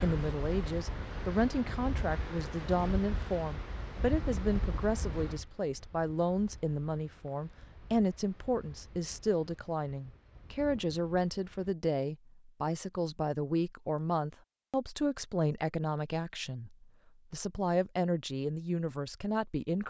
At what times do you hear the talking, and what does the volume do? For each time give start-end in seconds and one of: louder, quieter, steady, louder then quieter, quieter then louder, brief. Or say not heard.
0.0-19.8 steady.